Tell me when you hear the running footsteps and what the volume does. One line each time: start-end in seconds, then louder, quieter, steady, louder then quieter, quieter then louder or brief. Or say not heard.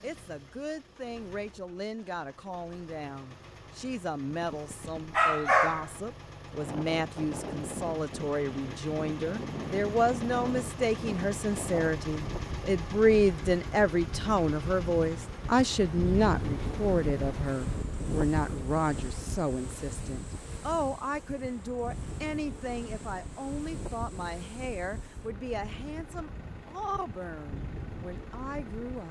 not heard.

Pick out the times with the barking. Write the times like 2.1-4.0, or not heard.
4.4-5.9.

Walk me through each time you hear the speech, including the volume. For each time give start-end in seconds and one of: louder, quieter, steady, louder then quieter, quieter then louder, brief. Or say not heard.
0.0-29.0 louder then quieter.